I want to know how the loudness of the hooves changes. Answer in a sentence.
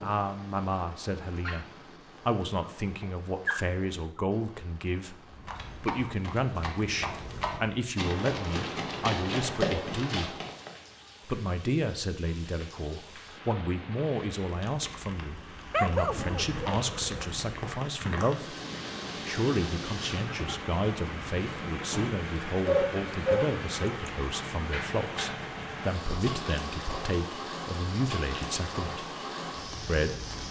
The loudness of the hooves goes up.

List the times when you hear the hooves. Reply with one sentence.
You can hear the hooves from 5.2 to 10.7 s.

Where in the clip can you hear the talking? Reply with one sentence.
You can hear the talking from 0.0 to 10.3 s, from 11.2 to 18.6 s, from 19.2 to 29.1 s and from 29.9 to 30.4 s.